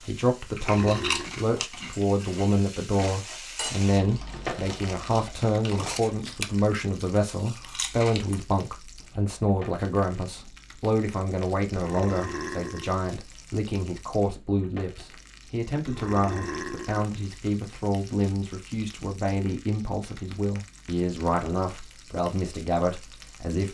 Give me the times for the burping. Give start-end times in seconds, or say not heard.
0.6-1.4, 11.7-12.9, 15.8-17.1.